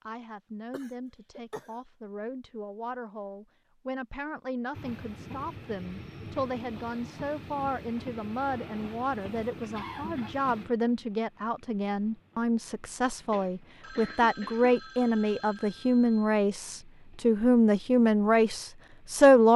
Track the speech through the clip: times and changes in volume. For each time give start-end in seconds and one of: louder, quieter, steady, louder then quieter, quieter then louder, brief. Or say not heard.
0.0-19.5 louder.